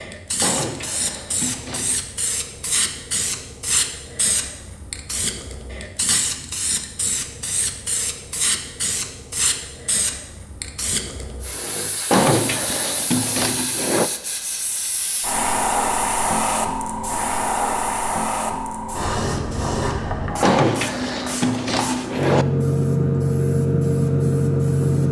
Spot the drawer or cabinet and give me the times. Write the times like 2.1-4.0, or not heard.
0.4-2.0, 12.1-14.1, 20.4-22.4.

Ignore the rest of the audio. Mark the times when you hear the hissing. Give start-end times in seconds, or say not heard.
0.0-25.0.